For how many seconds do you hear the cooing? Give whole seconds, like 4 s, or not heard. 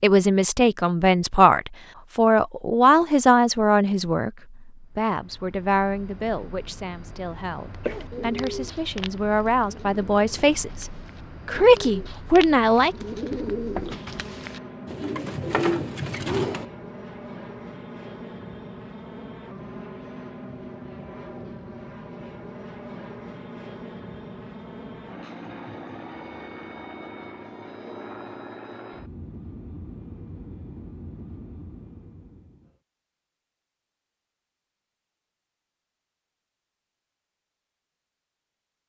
9 s.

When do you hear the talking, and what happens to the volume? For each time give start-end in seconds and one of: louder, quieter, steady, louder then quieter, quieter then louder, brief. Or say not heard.
0.0-10.8 quieter then louder
11.4-12.9 brief.